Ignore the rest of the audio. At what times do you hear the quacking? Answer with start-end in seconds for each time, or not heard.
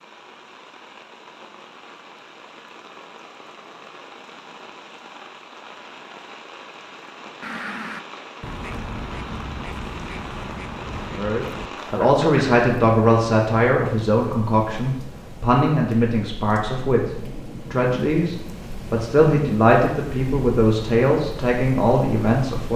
7.4-12.6.